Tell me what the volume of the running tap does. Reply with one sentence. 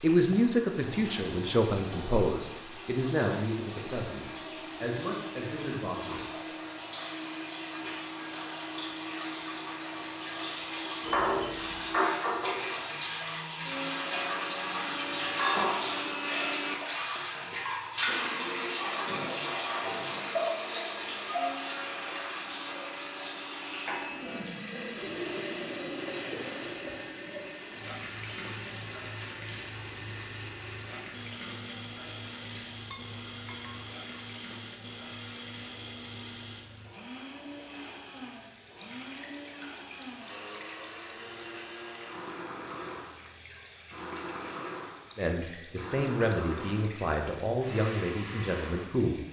The loudness of the running tap goes up, then down.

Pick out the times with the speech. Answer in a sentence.
You can hear the speech from 0.0 to 6.5 s and from 45.1 to 49.2 s.